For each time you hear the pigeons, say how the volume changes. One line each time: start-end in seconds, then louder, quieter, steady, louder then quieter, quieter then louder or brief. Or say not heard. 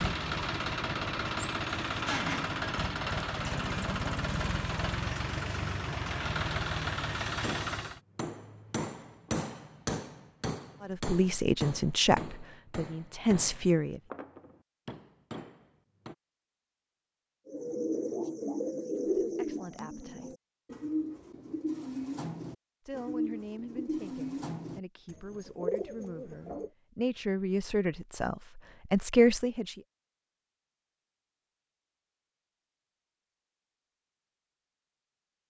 17.4-26.7 quieter.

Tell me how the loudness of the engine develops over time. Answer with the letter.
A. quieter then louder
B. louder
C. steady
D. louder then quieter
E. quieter
C.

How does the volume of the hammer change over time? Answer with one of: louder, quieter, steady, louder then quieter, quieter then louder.
quieter.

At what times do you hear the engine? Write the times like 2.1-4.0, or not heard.
0.0-8.0.